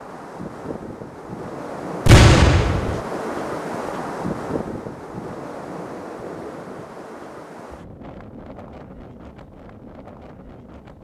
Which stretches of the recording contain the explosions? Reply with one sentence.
The explosions can be heard from 2.0 to 3.0 s.